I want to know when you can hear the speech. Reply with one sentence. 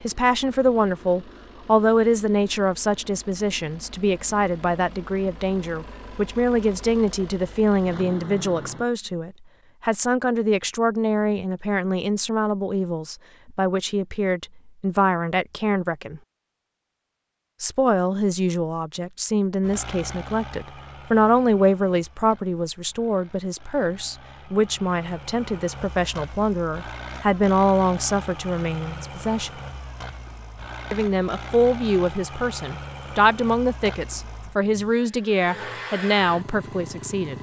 You can hear the speech from 0.0 to 16.2 s, from 17.6 to 29.6 s and from 30.9 to 37.3 s.